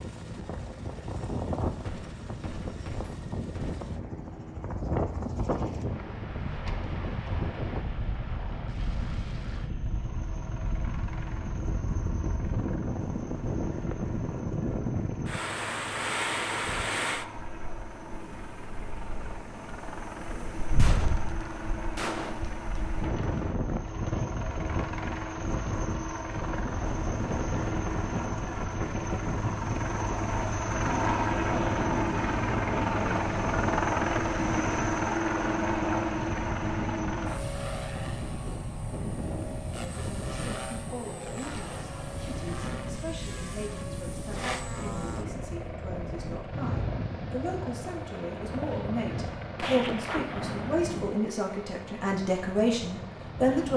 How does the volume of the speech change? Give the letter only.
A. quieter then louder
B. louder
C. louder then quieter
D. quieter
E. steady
B.